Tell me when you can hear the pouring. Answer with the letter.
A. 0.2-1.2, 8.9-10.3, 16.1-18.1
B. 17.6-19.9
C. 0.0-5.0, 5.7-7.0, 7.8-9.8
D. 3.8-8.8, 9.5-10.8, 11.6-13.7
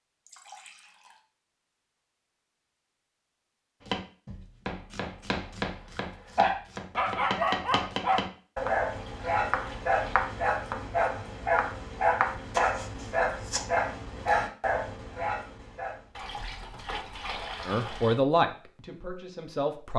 A.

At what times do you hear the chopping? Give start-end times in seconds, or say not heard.
3.8-8.8, 9.5-10.8, 11.6-13.7.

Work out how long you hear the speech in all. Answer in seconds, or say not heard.
2 s.